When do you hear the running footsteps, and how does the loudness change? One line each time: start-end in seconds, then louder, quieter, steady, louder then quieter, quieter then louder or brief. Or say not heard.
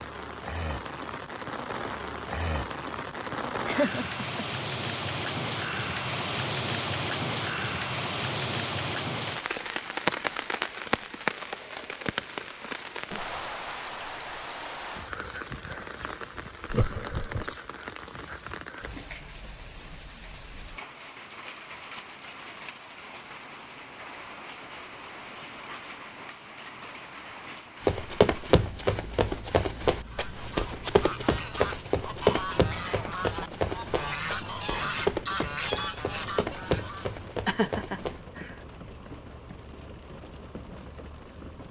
27.8-38.2 quieter.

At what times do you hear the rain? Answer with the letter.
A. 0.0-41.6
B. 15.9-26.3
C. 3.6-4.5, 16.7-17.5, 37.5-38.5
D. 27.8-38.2
A.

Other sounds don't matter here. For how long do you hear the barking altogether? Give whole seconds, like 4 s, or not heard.
not heard.